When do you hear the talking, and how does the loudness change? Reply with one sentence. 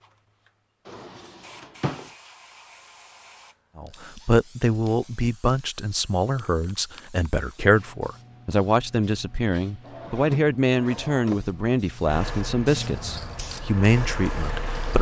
You can hear the talking from 3.8 to 14.9 s, at a steady volume.